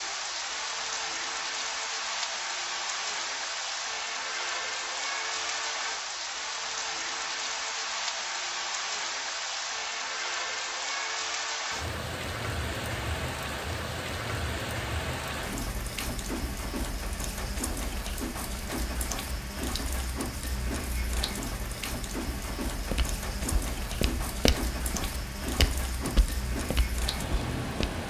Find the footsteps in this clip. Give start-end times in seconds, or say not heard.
22.9-28.0.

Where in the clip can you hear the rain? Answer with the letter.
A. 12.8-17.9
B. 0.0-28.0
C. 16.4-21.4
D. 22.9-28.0
B.